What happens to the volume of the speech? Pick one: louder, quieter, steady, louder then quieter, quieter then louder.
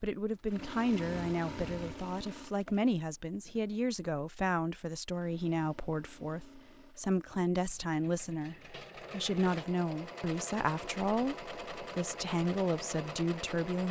steady.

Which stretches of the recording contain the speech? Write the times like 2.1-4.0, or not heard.
0.0-13.8.